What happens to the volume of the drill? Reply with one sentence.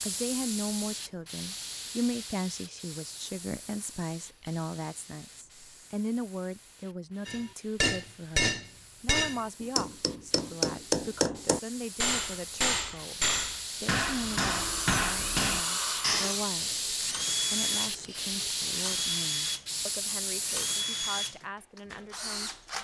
The loudness of the drill stays about the same.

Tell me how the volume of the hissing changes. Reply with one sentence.
The volume of the hissing goes down, then up.